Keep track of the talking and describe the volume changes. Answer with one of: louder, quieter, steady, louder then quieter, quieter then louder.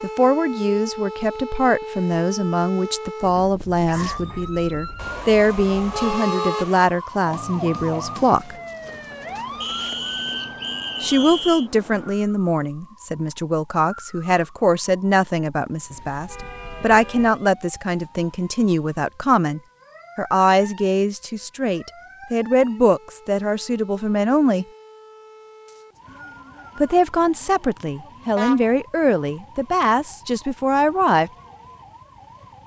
steady.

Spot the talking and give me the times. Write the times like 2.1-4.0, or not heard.
0.0-8.6, 11.0-24.6, 26.8-31.3.